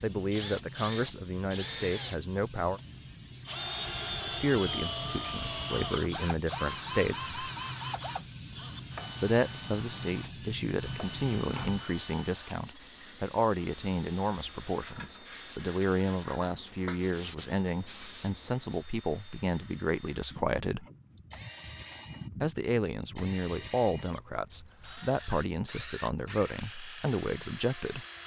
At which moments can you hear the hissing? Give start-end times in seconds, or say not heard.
0.0-18.9.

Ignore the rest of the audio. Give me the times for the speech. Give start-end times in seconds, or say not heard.
0.0-2.8, 4.2-7.5, 9.2-20.9, 22.4-28.1.